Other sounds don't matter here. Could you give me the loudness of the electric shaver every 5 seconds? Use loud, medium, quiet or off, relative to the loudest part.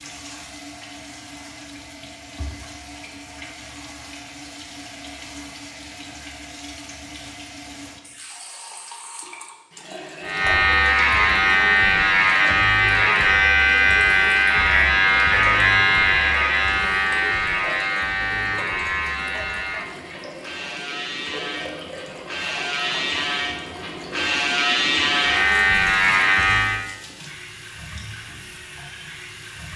off, off, loud, loud, medium, loud.